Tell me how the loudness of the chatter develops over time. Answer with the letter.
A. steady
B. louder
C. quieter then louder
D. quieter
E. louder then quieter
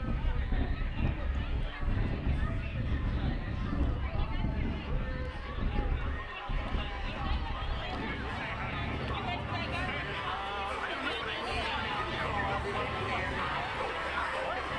B.